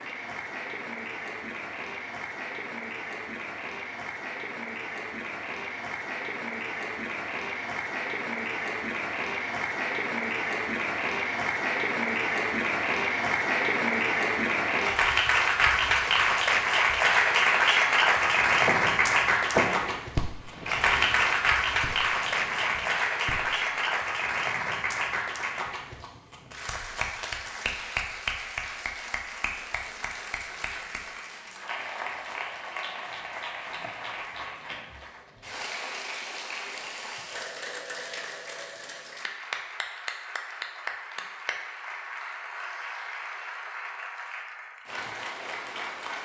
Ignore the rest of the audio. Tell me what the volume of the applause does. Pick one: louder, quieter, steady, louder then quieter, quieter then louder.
louder then quieter.